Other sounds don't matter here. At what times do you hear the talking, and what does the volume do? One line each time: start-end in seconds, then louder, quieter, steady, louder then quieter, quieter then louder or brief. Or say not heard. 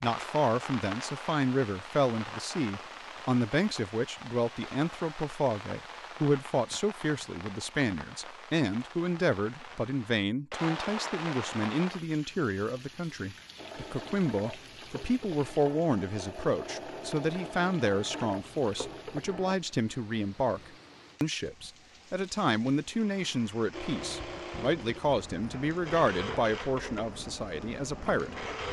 0.0-28.4 steady.